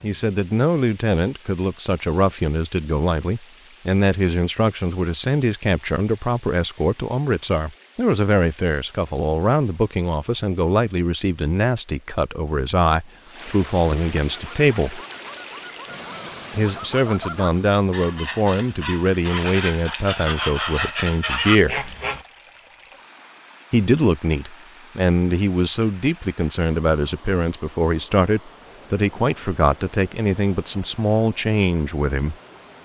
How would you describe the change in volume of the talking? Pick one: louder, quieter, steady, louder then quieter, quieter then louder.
steady.